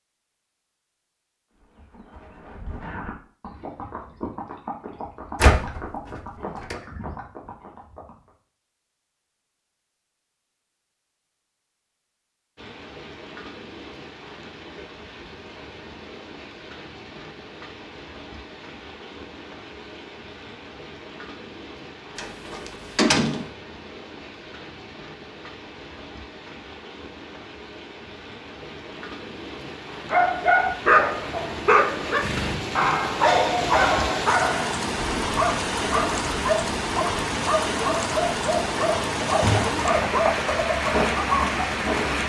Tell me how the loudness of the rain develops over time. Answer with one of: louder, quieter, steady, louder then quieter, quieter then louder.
louder.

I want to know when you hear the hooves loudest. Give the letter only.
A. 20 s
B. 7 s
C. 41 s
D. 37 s
C.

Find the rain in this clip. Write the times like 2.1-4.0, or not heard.
12.6-42.2.